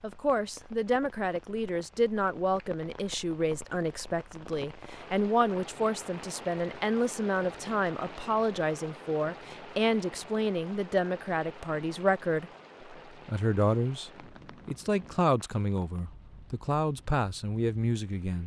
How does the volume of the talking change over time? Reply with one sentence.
The volume of the talking stays about the same.